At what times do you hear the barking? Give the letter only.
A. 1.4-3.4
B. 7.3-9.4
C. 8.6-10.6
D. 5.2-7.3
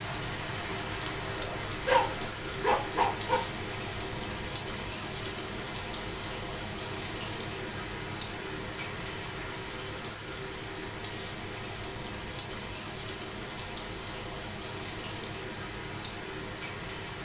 A.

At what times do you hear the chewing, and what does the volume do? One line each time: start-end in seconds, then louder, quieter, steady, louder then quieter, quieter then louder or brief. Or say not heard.
not heard.